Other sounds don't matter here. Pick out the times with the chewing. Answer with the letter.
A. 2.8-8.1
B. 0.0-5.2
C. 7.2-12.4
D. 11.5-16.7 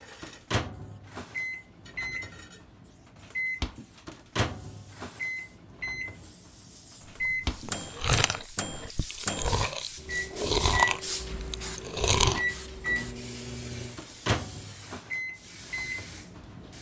C.